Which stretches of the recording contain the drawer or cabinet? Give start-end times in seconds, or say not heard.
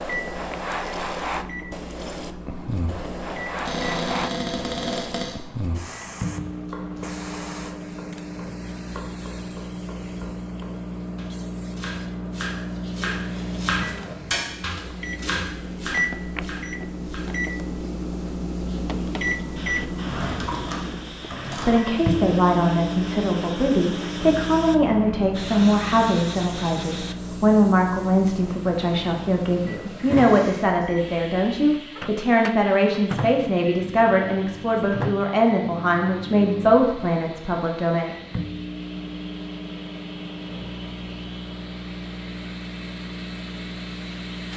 3.6-5.3, 19.9-21.9, 29.9-30.9.